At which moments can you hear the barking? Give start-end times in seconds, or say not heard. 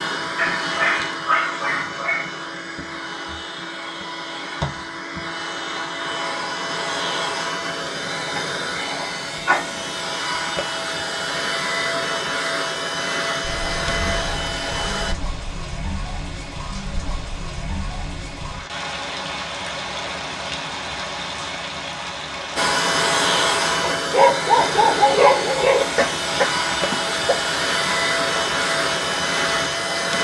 0.3-2.4, 23.8-25.9.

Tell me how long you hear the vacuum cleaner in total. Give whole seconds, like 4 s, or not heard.
23 s.